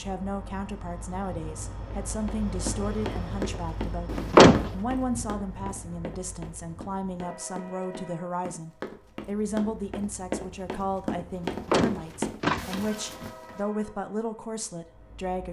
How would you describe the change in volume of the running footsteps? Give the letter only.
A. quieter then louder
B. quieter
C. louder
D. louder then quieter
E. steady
A.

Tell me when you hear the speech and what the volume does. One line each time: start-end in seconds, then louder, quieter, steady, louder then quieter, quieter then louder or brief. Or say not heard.
0.0-15.4 steady.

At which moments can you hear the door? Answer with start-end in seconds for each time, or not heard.
4.1-4.7, 11.4-13.3.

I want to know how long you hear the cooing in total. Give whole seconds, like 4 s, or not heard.
not heard.